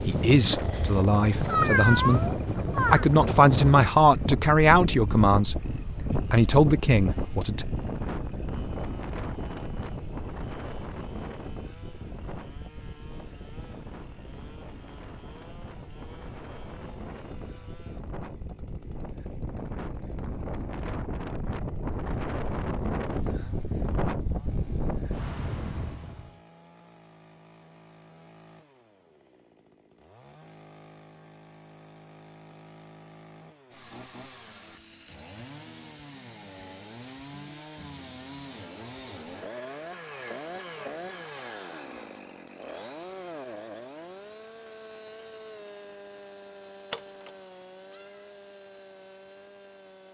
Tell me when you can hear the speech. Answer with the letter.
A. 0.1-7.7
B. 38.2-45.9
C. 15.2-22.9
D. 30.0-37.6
A.